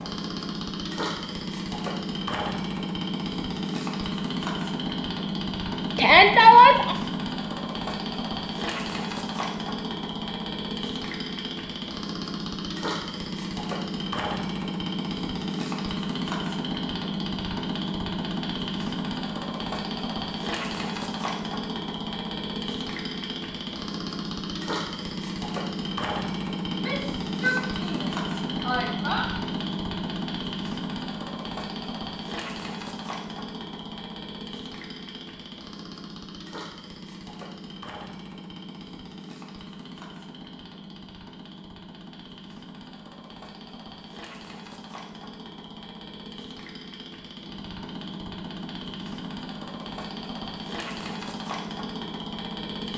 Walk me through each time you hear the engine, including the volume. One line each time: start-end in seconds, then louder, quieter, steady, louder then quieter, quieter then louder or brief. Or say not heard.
0.0-52.9 quieter.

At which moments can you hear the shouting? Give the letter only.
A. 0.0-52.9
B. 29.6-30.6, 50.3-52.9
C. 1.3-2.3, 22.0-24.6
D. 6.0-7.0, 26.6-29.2
D.